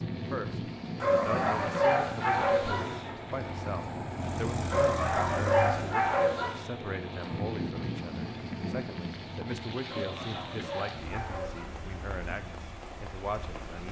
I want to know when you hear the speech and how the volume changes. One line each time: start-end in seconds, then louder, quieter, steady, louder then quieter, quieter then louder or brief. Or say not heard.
0.3-13.8 steady.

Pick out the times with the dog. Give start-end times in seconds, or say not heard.
1.0-3.1, 4.7-6.6, 9.8-11.7.